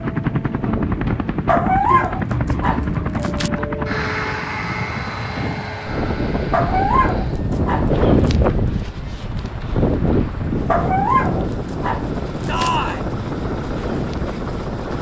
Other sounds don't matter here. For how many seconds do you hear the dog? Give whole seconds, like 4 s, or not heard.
6 s.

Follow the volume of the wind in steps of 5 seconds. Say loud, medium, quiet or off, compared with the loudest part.
medium, loud, loud.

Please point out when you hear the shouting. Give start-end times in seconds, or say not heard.
12.4-13.1.